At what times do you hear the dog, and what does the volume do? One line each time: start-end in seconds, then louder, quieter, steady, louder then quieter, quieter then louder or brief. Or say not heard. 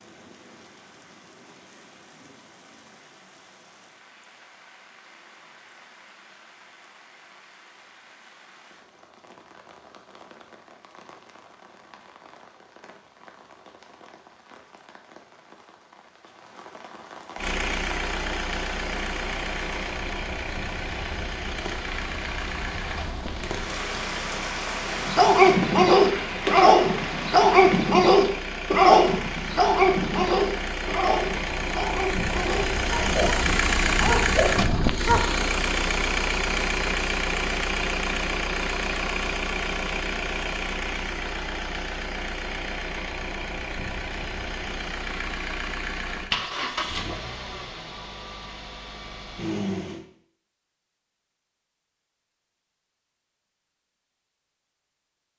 25.0-35.2 quieter.